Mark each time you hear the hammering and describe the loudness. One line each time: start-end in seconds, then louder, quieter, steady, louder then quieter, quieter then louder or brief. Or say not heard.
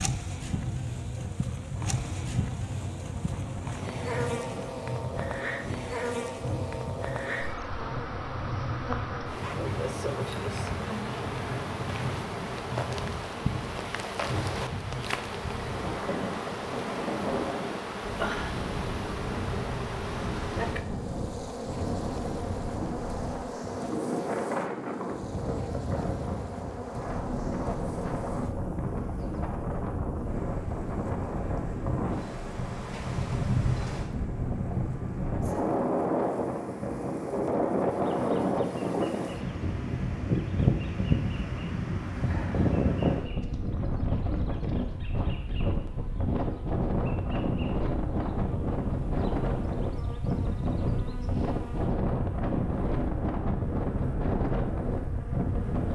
not heard.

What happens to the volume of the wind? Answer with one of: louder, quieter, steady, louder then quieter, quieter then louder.
louder.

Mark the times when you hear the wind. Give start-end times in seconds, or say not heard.
0.0-55.8.